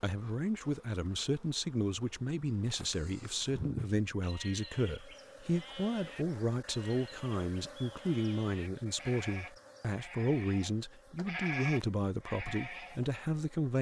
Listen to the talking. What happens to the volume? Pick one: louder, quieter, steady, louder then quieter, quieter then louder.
steady.